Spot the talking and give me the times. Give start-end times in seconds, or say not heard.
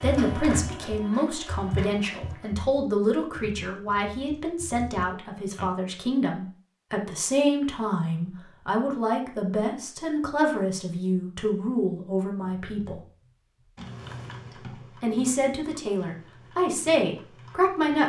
0.0-13.0, 15.0-18.0.